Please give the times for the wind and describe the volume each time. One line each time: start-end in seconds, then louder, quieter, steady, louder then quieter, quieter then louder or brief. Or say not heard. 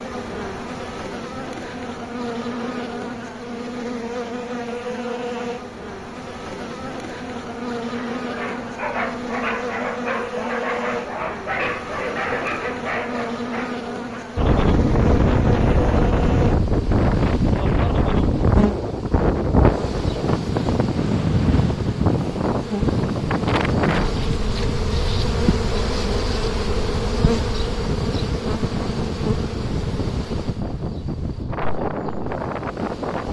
14.3-33.2 quieter.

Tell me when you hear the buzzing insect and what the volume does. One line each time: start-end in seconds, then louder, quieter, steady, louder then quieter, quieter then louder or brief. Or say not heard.
0.0-33.2 steady.